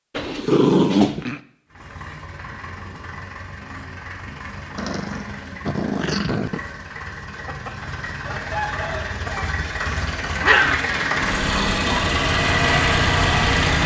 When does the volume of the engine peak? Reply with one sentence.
The loudest moment of the engine is at 13 seconds.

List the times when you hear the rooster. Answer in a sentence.
The rooster can be heard from 7.5 to 9.4 s.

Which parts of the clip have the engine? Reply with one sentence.
You can hear the engine from 1.7 to 13.8 s.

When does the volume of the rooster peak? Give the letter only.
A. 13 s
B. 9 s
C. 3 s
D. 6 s
B.